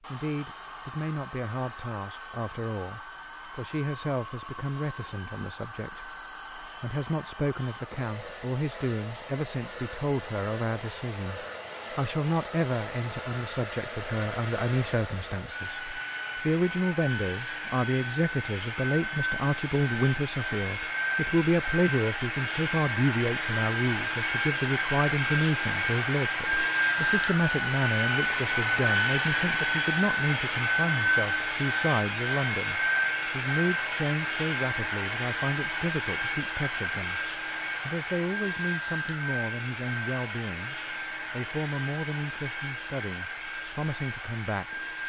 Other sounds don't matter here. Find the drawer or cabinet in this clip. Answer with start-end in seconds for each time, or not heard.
not heard.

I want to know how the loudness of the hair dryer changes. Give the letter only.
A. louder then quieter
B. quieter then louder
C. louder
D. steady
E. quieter
A.